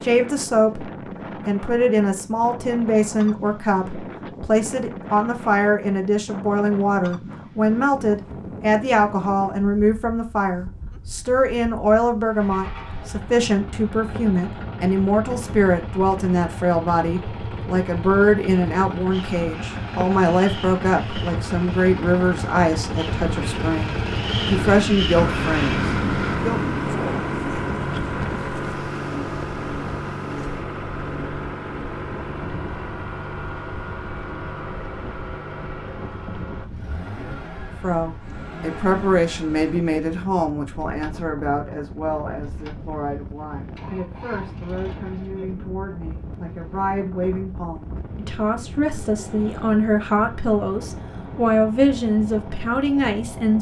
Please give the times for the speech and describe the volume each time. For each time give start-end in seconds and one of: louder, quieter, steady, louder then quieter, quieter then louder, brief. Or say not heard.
0.0-0.8 brief
1.4-26.6 steady
37.8-53.5 quieter then louder.